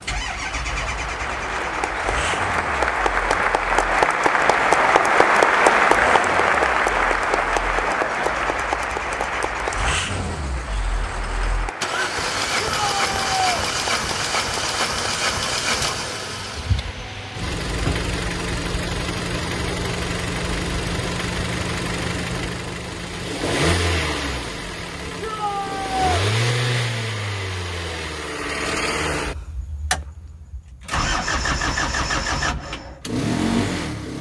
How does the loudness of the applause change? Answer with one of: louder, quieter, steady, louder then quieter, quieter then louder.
louder then quieter.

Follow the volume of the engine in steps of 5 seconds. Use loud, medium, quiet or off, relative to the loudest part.
medium, medium, loud, loud, loud, loud, loud.